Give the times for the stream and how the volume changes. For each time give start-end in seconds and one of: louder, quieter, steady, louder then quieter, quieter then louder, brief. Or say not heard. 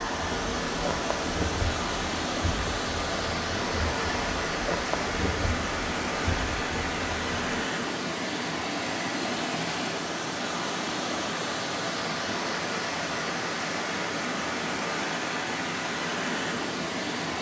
0.0-17.3 steady.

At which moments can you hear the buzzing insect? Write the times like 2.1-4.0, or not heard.
0.0-7.6.